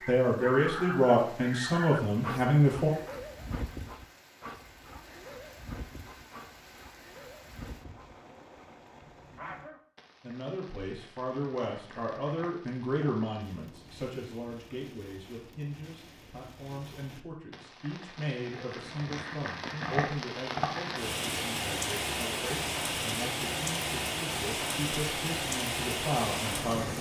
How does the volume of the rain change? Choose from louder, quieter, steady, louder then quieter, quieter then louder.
louder.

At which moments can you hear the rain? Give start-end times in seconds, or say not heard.
0.0-26.9.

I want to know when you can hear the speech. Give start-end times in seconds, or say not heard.
0.1-2.9, 10.2-26.9.